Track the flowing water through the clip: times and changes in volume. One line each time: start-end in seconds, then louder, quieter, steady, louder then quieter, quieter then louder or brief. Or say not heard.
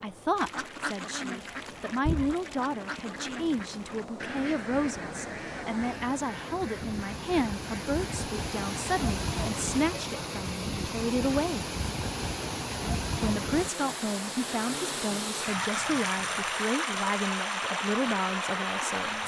0.0-19.2 louder.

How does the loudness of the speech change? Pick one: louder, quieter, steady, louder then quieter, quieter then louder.
steady.